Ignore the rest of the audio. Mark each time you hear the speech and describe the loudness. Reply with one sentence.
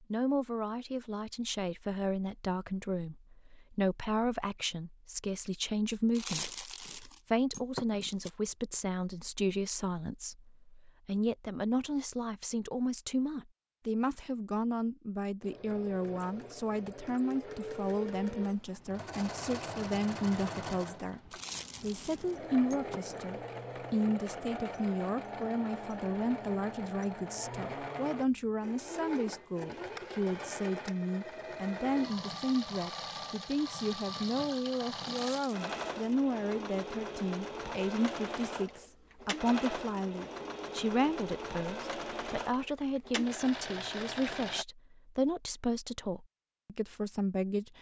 The speech can be heard from 0.1 to 21.2 s, at a steady volume; and from 21.8 to 47.7 s, at a steady volume.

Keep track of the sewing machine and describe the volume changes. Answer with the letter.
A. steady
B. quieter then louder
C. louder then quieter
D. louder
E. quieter
A.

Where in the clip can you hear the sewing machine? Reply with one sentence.
The sewing machine can be heard from 15.4 to 44.6 s.